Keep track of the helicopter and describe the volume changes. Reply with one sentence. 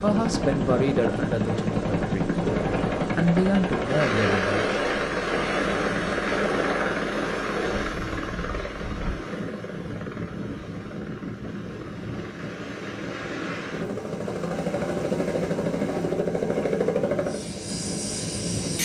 The volume of the helicopter goes down, then up.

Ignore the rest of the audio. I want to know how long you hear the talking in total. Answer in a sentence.
The talking can be heard for 4 seconds in total.